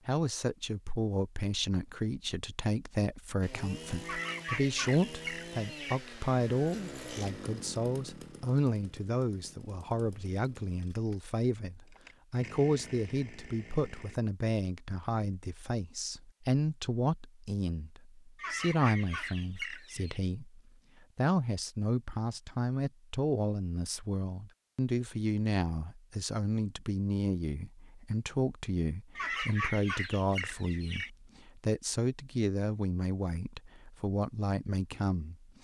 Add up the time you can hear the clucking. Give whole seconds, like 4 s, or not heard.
6 s.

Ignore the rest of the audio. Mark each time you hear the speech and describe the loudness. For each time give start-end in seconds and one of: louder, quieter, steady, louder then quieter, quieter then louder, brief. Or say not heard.
0.1-35.5 steady.